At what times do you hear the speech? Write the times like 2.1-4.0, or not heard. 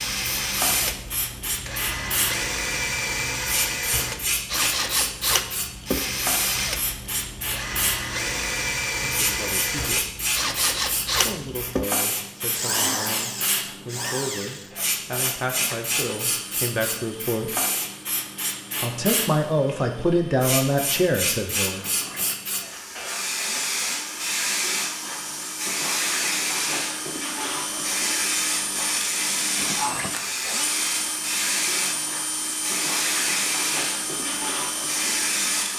8.8-10.1, 11.2-17.6, 18.8-21.8.